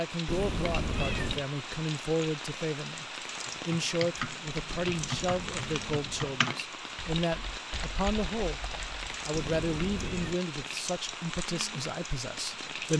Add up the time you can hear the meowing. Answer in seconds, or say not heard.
4 s.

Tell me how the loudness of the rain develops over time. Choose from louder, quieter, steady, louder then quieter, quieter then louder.
steady.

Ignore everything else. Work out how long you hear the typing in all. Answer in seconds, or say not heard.
6 s.